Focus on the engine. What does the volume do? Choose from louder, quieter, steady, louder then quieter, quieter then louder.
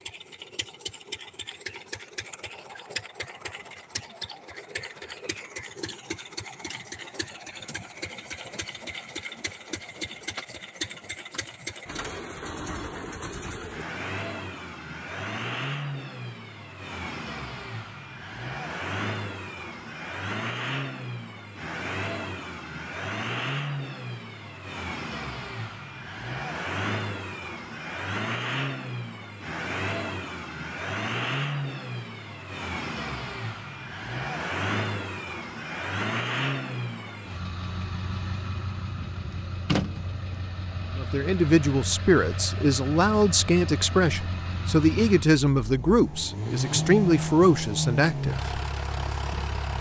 louder.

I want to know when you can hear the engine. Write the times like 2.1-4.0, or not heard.
0.0-49.7.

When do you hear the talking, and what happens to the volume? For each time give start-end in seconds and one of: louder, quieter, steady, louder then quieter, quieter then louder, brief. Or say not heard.
41.0-48.6 steady.